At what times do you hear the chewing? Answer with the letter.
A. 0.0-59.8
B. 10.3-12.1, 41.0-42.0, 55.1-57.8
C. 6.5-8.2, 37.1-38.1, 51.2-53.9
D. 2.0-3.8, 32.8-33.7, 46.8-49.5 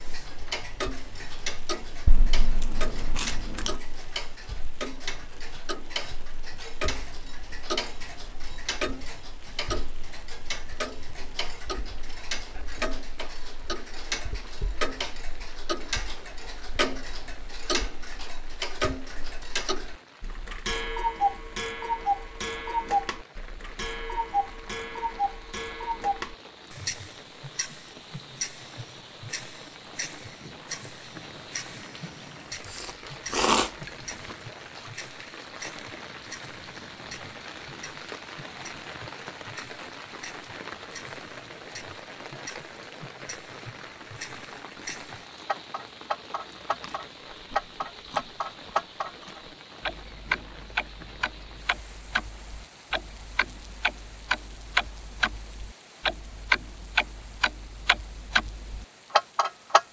D.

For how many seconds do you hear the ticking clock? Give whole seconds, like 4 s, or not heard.
60 s.